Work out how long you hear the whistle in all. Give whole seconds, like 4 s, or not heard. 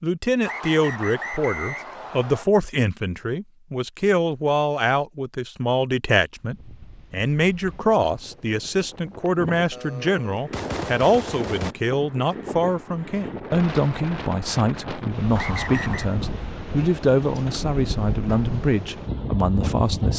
3 s.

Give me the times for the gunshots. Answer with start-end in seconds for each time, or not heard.
9.7-11.8.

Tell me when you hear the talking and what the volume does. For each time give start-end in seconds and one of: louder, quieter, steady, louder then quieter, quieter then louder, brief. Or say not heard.
0.0-20.1 steady.